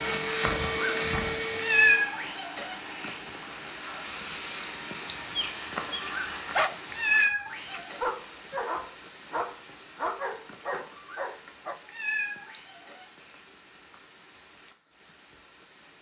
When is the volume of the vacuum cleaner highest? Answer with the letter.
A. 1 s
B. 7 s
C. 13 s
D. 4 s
A.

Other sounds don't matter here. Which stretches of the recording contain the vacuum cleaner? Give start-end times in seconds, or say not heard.
0.0-6.6.